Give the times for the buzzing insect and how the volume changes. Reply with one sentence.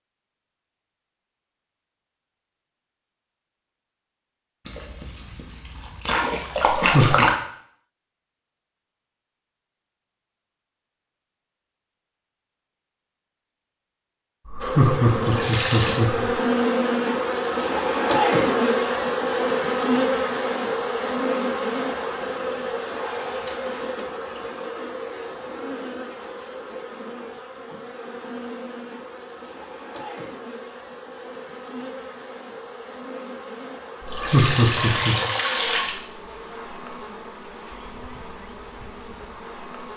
You can hear the buzzing insect from 14.6 to 39.9 s, getting quieter.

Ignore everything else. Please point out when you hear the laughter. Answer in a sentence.
You can hear the laughter from 6.8 to 7.2 s, from 14.4 to 16.4 s and from 34.0 to 35.1 s.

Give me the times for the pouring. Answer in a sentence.
You can hear the pouring from 4.7 to 7.3 s, from 15.2 to 16.0 s and from 34.0 to 36.0 s.